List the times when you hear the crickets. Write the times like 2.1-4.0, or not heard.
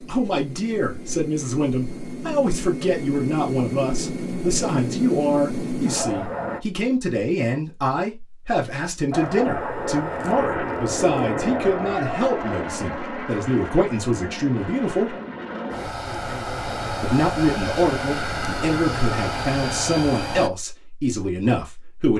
not heard.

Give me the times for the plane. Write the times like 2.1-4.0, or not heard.
0.0-6.6, 9.1-20.5.